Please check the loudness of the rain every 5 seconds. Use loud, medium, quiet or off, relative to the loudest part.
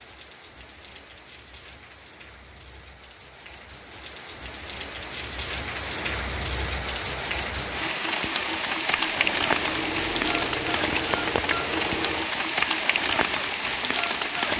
quiet, loud, loud.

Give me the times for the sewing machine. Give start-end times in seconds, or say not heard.
9.1-12.2.